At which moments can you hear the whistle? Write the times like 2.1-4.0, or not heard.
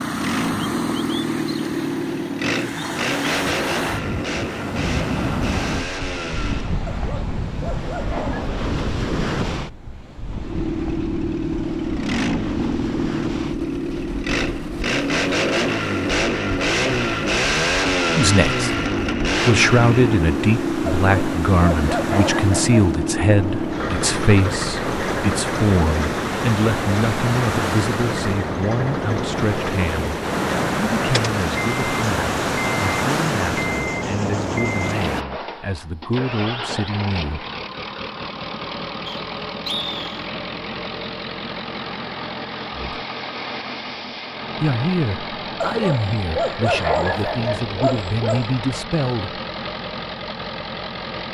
39.0-40.3.